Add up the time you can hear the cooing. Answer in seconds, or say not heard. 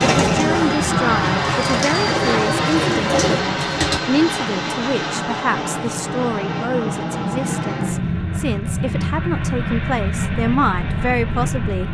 4 s.